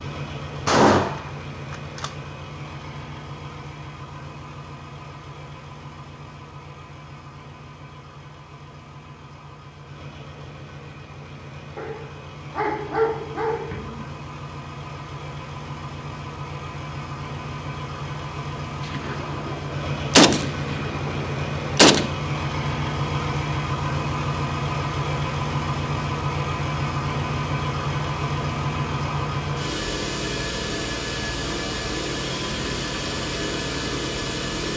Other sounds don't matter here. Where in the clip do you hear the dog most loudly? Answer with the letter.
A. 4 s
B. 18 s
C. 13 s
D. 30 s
C.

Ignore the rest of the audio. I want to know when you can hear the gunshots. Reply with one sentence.
The gunshots can be heard from 0.7 to 2.1 s, from 18.9 to 19.6 s and from 20.1 to 22.1 s.